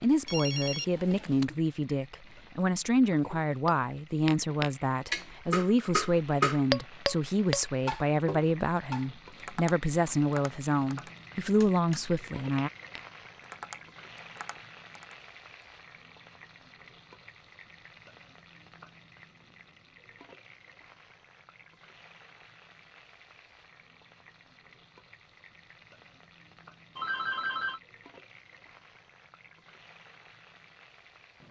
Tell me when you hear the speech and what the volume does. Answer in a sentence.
The speech can be heard from 0.0 to 12.7 s, at a steady volume.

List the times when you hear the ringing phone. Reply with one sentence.
The ringing phone can be heard from 0.2 to 1.6 s and from 26.9 to 27.8 s.